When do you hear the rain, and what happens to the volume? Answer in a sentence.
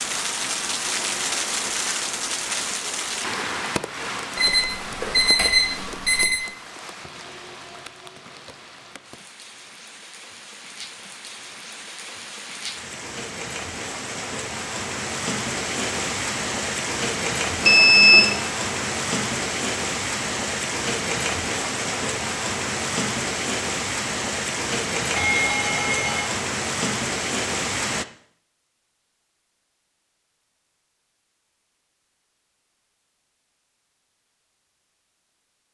You can hear the rain from 0.0 to 28.1 s, getting quieter then louder.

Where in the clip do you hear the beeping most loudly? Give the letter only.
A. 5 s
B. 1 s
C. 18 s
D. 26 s
C.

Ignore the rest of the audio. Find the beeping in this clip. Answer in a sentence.
You can hear the beeping from 4.3 to 6.4 s, from 17.6 to 18.4 s and from 25.1 to 26.3 s.